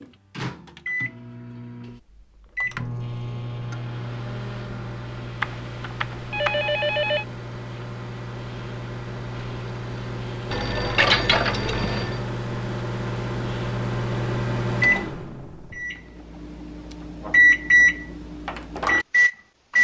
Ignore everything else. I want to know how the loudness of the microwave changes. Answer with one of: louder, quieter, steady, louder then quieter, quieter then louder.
louder.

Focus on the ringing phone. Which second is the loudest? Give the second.
11 s.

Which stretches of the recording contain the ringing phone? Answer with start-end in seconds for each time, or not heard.
5.4-7.2, 10.5-12.2.